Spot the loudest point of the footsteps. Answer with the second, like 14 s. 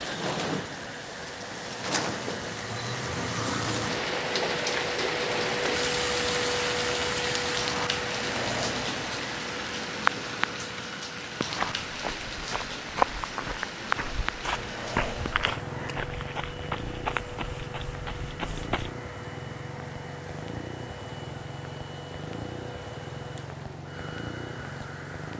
13 s.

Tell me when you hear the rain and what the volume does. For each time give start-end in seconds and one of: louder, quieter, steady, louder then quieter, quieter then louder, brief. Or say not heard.
0.0-25.3 quieter.